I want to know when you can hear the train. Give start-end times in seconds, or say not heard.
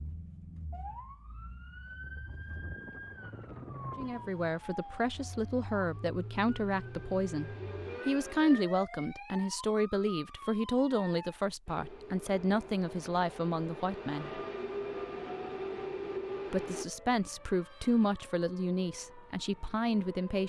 4.0-8.7, 11.7-16.9.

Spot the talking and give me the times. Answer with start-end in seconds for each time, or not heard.
4.0-14.4, 16.5-20.4.